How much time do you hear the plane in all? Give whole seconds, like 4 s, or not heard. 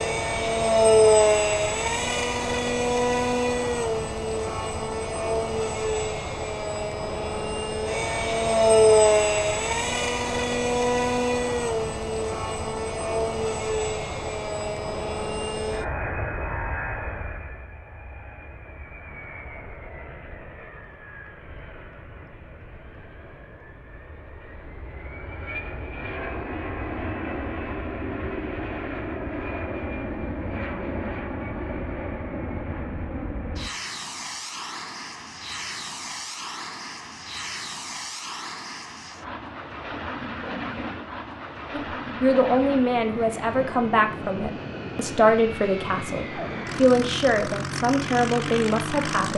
49 s.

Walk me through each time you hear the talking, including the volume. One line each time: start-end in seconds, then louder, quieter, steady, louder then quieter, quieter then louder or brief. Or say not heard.
41.7-49.3 steady.